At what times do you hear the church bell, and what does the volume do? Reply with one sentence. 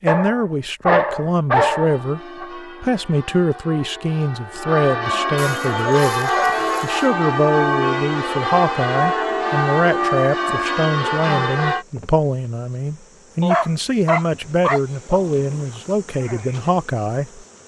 You can hear the church bell from 1.6 to 11.8 s, getting louder.